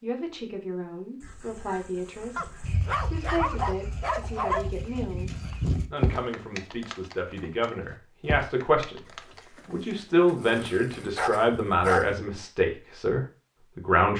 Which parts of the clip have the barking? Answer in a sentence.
You can hear the barking from 2.4 to 4.7 s and from 10.4 to 12.1 s.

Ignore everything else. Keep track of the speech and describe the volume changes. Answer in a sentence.
The volume of the speech goes up.